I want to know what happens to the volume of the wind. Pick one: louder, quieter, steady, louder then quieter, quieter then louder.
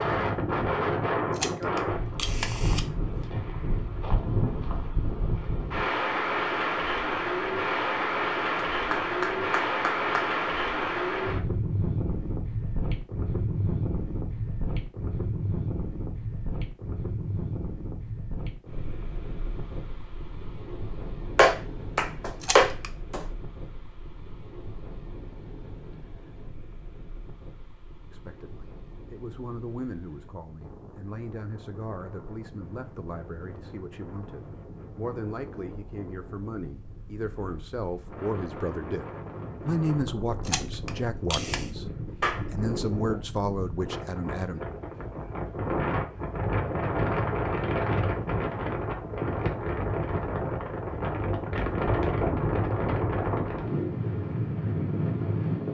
quieter then louder.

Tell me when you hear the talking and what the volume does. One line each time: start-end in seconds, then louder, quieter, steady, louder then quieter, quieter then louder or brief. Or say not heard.
28.1-44.6 louder.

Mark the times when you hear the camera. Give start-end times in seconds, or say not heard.
1.3-2.9, 22.4-22.9, 40.5-41.7.